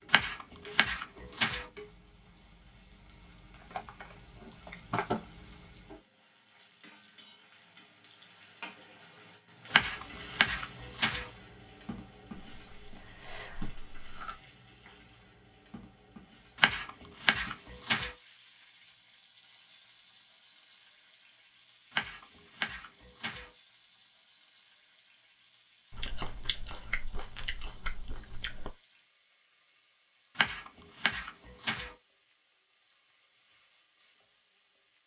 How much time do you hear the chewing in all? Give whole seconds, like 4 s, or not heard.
6 s.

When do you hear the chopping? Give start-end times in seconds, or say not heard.
0.1-1.6, 9.7-11.3, 16.6-18.1, 21.9-23.5, 30.4-31.9.